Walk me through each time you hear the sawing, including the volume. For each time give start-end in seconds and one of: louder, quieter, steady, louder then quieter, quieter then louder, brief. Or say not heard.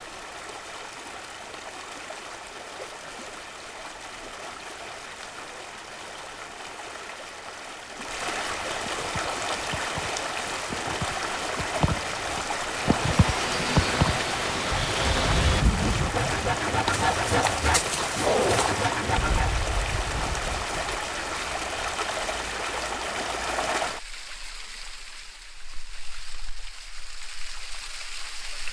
12.8-19.6 steady.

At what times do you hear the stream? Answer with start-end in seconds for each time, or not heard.
0.0-28.6.